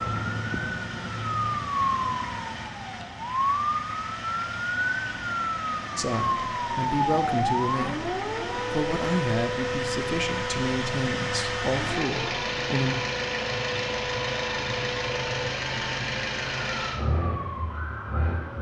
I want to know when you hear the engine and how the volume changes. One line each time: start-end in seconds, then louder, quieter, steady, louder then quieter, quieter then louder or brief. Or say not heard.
0.0-18.5 louder.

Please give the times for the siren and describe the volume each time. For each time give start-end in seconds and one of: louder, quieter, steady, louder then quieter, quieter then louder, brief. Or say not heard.
0.0-18.5 quieter.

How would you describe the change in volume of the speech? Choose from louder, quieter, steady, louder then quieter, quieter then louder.
steady.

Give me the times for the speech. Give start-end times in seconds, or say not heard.
6.0-12.9.